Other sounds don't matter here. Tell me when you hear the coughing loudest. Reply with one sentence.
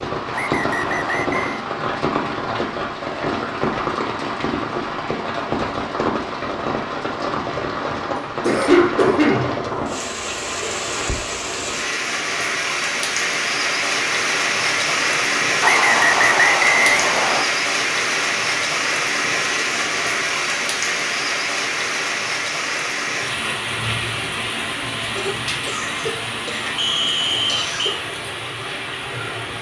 The volume of the coughing peaks at 9 seconds.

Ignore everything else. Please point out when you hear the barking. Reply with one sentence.
The barking can't be heard in this clip.